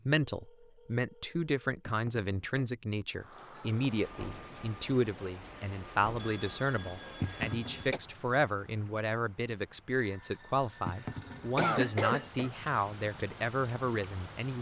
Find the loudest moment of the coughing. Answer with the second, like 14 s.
12 s.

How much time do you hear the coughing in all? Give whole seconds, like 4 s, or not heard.
3 s.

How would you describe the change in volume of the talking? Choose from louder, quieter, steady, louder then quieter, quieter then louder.
steady.